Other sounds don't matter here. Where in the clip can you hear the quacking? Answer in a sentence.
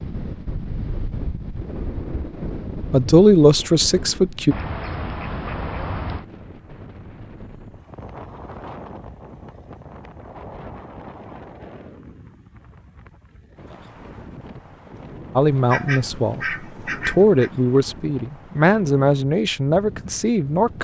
The quacking can be heard from 4.5 to 6.2 s and from 15.7 to 17.5 s.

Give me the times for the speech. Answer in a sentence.
The speech can be heard from 2.9 to 4.5 s and from 15.3 to 20.7 s.